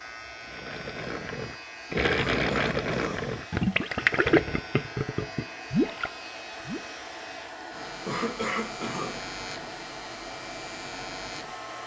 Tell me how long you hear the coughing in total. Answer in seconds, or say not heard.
2 s.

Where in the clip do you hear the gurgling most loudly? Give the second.
4 s.